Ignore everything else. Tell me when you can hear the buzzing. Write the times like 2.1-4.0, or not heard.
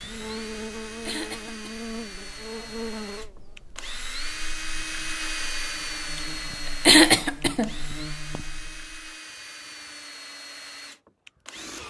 0.0-9.2.